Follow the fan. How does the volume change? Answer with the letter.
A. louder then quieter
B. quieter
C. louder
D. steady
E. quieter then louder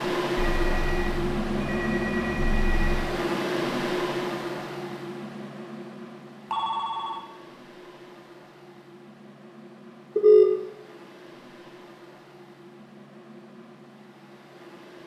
B.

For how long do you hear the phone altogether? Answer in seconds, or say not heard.
4 s.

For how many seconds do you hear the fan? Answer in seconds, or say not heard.
15 s.